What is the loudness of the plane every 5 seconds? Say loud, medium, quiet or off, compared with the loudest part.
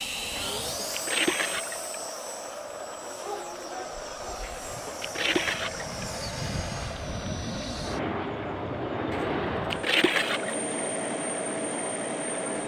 medium, loud, loud.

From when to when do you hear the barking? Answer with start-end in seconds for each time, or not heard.
3.2-4.5.